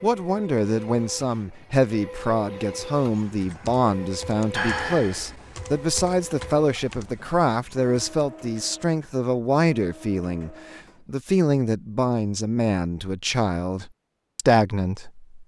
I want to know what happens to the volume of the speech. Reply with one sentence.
The volume of the speech stays about the same.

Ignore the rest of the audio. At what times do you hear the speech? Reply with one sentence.
The speech can be heard from 0.0 to 15.2 s.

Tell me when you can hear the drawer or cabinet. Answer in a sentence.
The drawer or cabinet can't be heard in this clip.